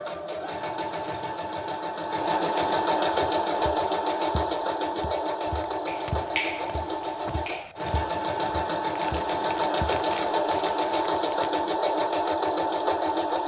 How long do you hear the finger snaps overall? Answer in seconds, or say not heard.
2 s.